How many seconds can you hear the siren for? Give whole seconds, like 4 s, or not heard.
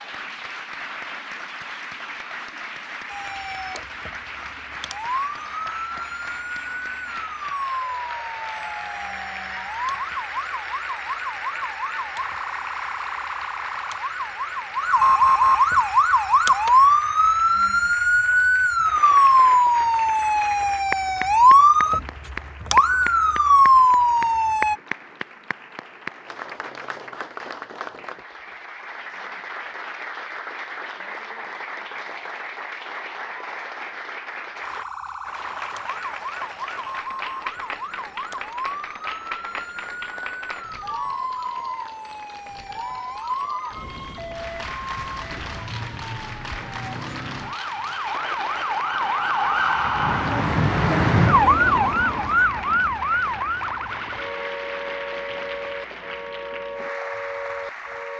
45 s.